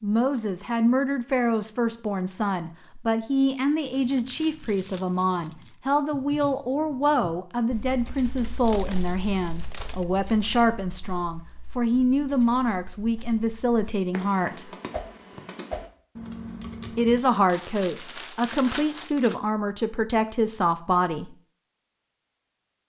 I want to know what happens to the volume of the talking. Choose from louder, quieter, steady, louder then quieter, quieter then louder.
steady.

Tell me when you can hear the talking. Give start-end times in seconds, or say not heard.
0.0-14.7, 16.9-21.4.